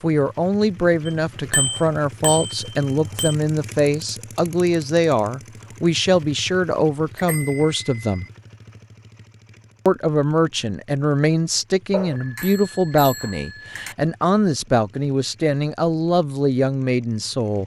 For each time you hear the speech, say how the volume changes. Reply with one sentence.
The speech can be heard from 0.0 to 8.2 s, at a steady volume; and from 9.8 to 17.6 s, at a steady volume.